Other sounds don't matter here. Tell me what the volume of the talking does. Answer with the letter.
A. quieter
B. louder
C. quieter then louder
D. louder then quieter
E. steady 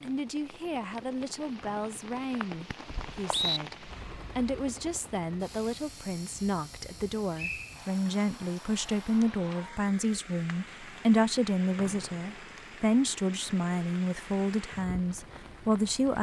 B.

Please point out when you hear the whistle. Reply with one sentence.
The whistle can be heard from 1.6 to 3.6 s, from 7.3 to 7.8 s and from 11.8 to 12.3 s.